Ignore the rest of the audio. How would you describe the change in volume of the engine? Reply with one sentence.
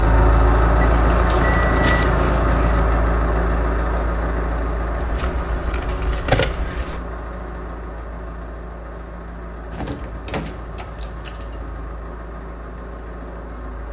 The loudness of the engine goes down.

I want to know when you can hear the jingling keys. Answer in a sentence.
You can hear the jingling keys from 0.8 to 2.8 s, from 5.0 to 7.0 s and from 9.7 to 11.8 s.